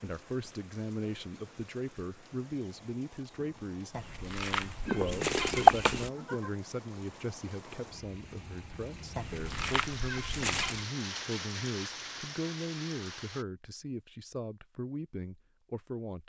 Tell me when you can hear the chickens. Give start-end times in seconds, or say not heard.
4.0-6.1, 9.2-10.8.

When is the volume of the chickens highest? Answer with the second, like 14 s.
6 s.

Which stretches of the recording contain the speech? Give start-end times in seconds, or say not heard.
0.0-16.2.